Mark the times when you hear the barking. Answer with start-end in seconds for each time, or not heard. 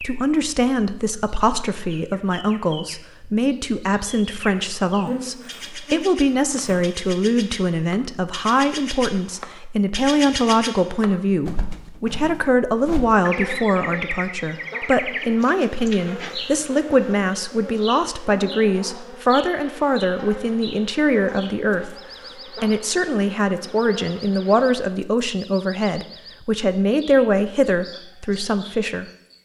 not heard.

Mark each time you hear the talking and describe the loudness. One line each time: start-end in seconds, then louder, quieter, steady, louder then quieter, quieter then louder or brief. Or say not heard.
0.0-29.4 steady.